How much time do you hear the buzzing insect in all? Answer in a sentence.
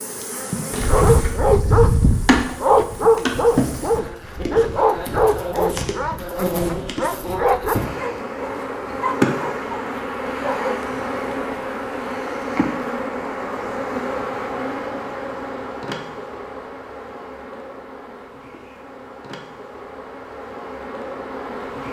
You can hear the buzzing insect for 22 seconds altogether.